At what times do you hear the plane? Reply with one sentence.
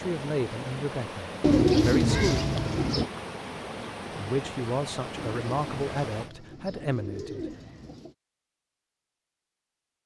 The plane can't be heard in this clip.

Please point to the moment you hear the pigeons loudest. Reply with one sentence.
The volume of the pigeons peaks at 2 seconds.